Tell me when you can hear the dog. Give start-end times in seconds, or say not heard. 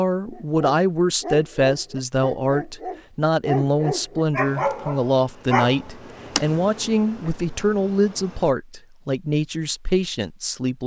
0.3-5.8.